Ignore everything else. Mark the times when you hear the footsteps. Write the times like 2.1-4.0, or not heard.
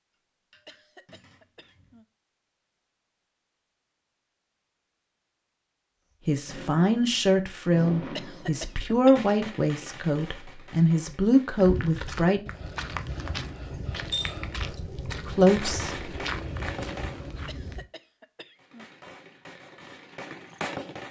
11.6-17.9.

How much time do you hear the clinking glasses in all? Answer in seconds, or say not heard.
2 s.